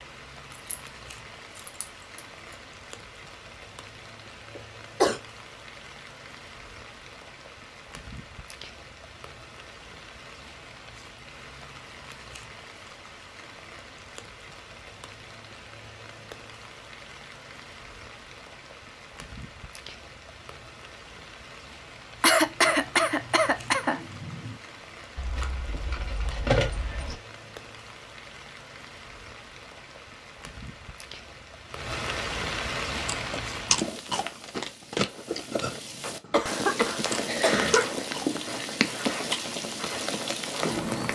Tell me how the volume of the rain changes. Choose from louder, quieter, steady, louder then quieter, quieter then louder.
louder.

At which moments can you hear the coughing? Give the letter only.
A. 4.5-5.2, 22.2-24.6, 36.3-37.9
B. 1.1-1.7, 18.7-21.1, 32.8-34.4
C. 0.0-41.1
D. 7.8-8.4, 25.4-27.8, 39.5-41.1
A.